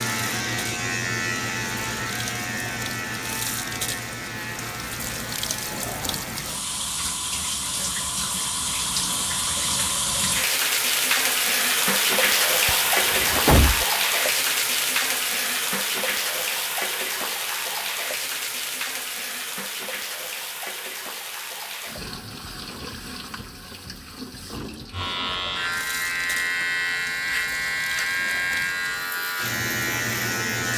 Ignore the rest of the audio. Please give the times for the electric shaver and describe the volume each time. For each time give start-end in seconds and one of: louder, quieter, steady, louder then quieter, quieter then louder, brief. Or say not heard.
0.0-6.5 quieter
24.9-30.7 steady.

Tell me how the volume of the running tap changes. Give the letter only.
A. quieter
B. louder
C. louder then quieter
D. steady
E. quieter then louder
C.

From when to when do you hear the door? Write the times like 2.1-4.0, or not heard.
12.7-13.8.